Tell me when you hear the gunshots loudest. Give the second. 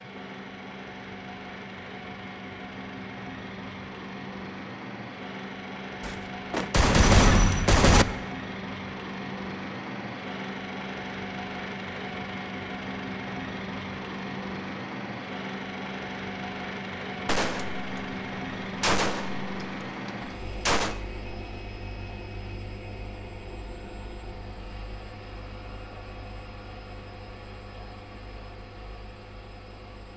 7 s.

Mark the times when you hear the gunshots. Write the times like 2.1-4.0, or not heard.
6.0-8.1, 17.2-21.0.